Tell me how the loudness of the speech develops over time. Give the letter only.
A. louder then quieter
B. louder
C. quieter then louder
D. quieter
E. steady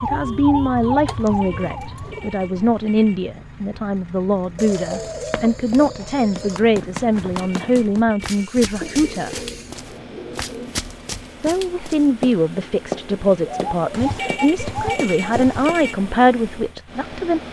E.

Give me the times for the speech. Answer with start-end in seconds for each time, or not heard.
0.0-9.3, 11.4-17.4.